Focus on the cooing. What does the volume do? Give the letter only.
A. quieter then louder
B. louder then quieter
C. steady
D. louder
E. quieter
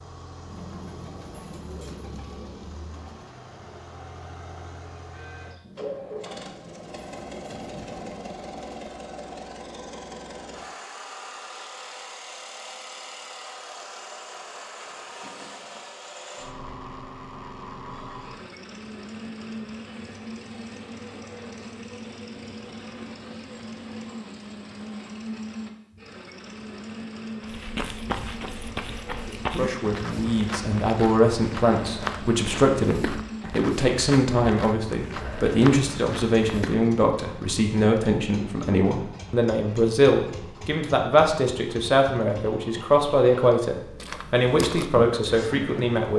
A.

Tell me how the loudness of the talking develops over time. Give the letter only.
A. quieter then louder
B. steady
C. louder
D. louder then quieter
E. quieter
B.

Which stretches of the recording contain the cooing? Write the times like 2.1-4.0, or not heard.
0.4-8.9.